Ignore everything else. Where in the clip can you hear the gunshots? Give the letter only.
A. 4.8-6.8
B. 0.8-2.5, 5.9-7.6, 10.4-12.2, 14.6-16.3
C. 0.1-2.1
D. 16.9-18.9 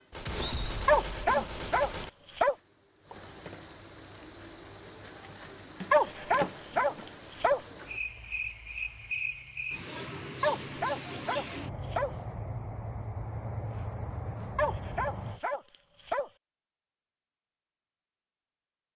C.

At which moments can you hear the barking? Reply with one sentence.
You can hear the barking from 0.8 to 2.5 s, from 5.9 to 7.6 s, from 10.4 to 12.2 s and from 14.6 to 16.3 s.